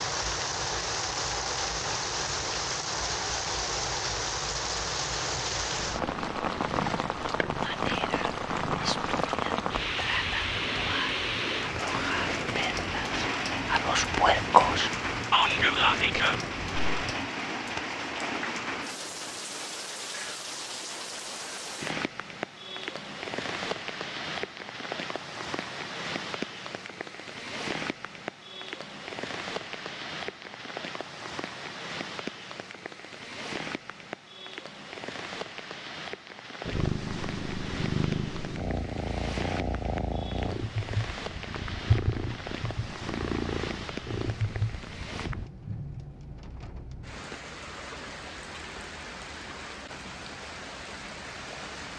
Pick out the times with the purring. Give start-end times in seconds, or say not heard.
6.0-17.2, 36.6-45.5.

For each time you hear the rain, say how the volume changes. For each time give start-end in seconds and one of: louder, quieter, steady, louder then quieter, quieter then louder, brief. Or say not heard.
0.0-51.9 quieter.